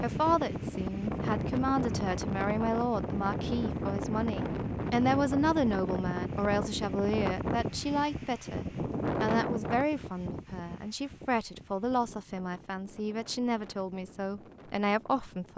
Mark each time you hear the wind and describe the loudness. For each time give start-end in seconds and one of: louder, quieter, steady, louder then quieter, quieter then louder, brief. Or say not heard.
0.0-15.5 quieter.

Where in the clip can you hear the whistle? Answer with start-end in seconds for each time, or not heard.
not heard.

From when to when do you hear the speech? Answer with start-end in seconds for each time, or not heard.
0.0-15.5.